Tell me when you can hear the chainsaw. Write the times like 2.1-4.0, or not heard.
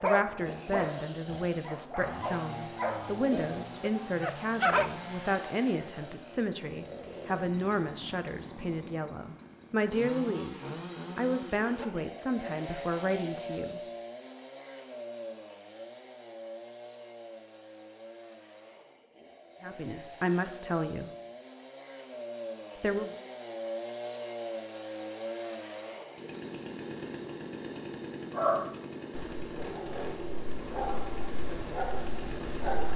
0.0-32.9.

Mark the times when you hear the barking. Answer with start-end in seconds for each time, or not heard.
0.0-4.9, 28.4-32.9.